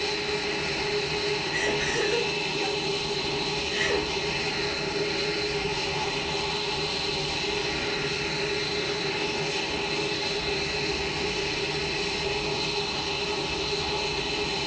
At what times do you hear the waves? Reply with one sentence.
You can't hear the waves here.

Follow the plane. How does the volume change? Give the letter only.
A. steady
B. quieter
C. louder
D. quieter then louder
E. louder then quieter
A.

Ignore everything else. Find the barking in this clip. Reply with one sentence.
You can't hear the barking here.